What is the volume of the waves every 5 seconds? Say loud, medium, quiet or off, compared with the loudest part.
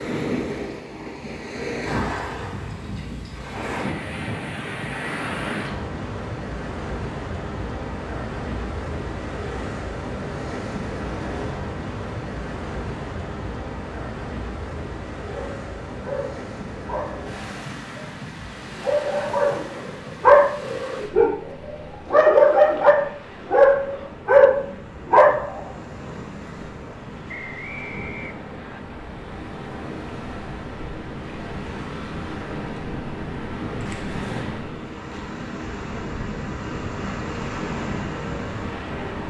loud, loud, loud, medium, medium, medium, loud, loud.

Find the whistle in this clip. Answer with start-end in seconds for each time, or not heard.
27.2-28.8.